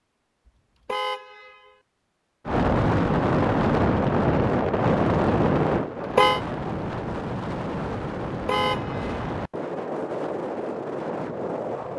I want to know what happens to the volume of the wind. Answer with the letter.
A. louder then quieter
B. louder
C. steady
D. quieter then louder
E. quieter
E.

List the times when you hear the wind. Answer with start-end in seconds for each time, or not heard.
2.5-11.9.